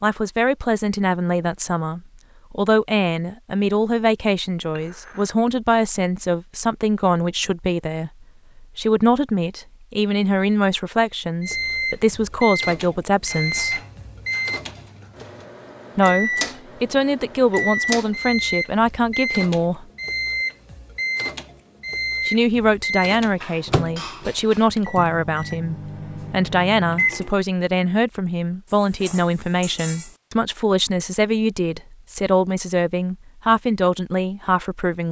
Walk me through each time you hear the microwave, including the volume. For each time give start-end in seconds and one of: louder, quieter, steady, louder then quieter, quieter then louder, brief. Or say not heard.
11.4-27.4 quieter.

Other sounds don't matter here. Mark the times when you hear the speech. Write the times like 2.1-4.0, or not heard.
0.0-13.8, 15.9-19.9, 22.2-35.0.